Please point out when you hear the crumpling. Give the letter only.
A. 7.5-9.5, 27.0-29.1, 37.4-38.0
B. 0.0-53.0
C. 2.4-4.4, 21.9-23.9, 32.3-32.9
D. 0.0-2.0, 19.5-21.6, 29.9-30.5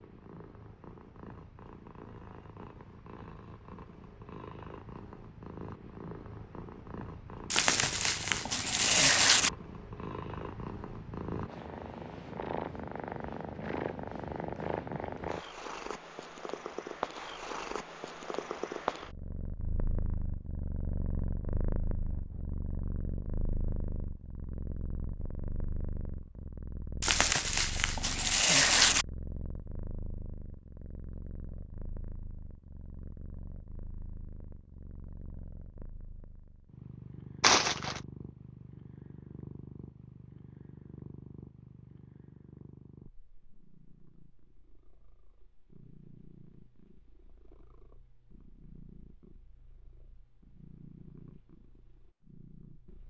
A.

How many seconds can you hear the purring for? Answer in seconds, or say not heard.
53 s.